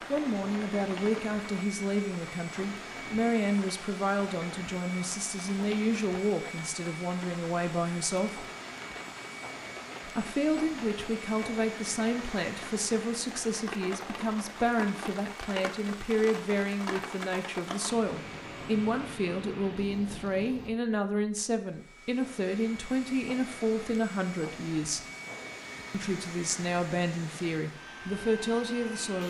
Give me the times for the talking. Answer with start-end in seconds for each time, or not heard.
0.1-8.4, 10.1-25.1, 25.9-29.2.